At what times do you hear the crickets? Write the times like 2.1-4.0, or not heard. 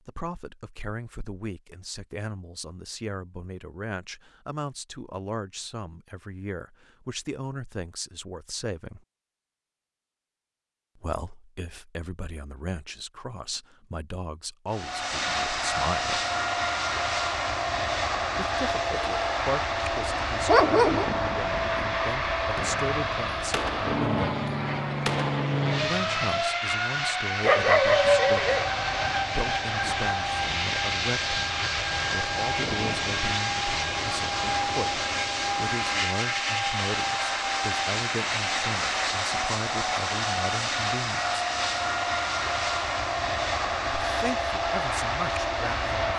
not heard.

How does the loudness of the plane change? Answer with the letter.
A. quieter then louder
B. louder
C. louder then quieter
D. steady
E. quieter
D.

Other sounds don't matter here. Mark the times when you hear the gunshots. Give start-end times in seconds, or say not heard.
22.6-26.4.